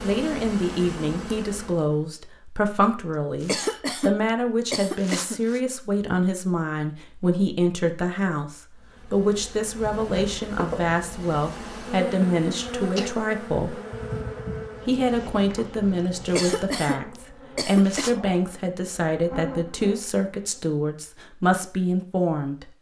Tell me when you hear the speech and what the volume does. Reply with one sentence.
The speech can be heard from 0.0 to 13.8 s, at a steady volume; and from 14.8 to 22.6 s, at a steady volume.